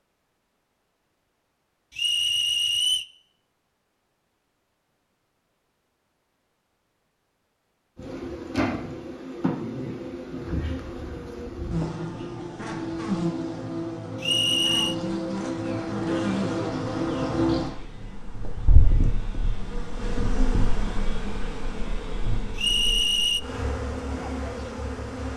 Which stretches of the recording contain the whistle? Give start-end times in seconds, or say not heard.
1.9-3.0, 14.2-14.9, 22.6-23.4.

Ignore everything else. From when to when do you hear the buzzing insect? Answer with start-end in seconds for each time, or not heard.
8.0-25.3.